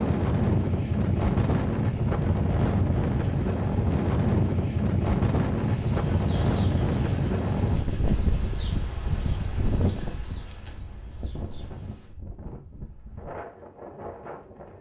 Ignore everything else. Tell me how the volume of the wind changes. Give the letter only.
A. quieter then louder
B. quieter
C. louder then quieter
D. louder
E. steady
B.